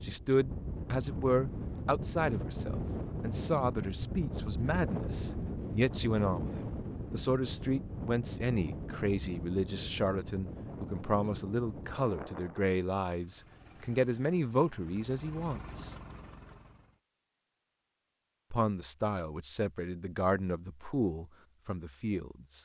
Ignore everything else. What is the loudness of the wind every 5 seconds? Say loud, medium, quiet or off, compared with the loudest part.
loud, loud, medium, off, off.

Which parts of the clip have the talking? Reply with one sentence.
The talking can be heard from 0.0 to 15.9 s and from 18.5 to 22.5 s.